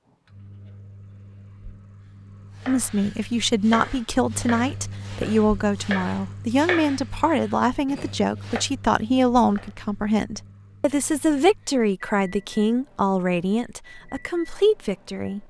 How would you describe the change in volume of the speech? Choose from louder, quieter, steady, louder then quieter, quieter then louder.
steady.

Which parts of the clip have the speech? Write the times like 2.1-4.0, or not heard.
2.6-15.4.